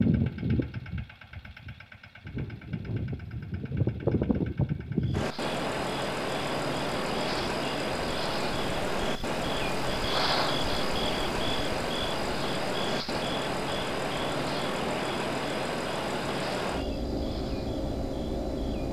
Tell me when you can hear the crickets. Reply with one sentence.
The crickets can be heard from 5.0 to 18.8 s.